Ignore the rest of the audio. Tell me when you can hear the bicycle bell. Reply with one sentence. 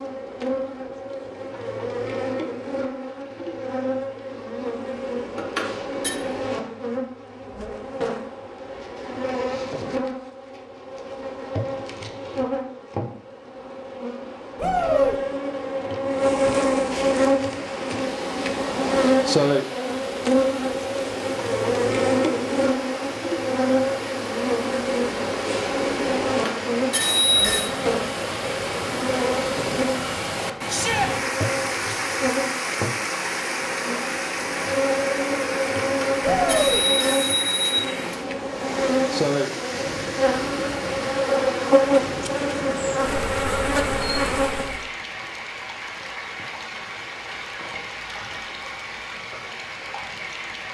The bicycle bell can be heard from 5.3 to 6.2 s, from 26.2 to 27.7 s and from 35.8 to 37.8 s.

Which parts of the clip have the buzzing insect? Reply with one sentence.
The buzzing insect can be heard from 0.0 to 44.9 s.